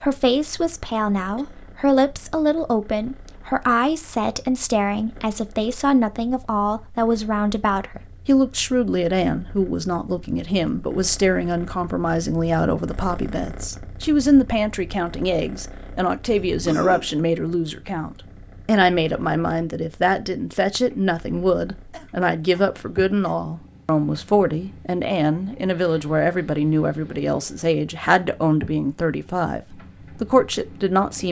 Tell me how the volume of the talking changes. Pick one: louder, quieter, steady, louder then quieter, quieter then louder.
steady.